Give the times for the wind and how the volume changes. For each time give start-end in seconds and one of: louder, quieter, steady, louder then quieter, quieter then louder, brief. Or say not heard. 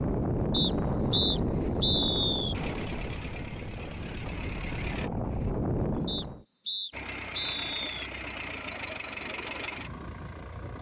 0.0-6.5 quieter then louder.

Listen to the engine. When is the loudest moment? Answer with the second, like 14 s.
9 s.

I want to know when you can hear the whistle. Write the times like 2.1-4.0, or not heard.
0.5-2.5, 6.0-7.8.